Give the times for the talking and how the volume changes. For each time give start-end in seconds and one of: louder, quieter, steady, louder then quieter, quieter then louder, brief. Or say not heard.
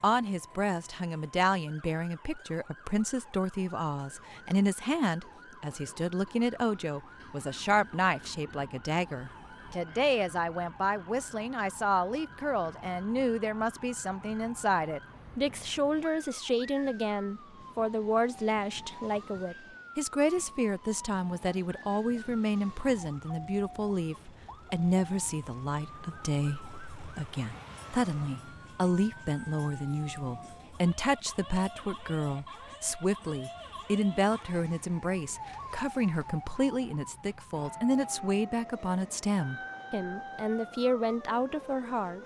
0.0-42.2 steady.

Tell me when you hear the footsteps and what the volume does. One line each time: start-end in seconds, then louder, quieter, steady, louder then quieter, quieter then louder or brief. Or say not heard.
not heard.